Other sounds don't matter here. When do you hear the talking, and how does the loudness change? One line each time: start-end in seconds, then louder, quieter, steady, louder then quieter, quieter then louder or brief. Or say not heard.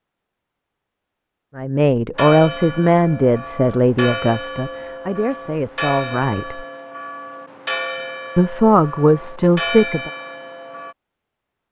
1.6-6.7 quieter
8.3-10.1 brief.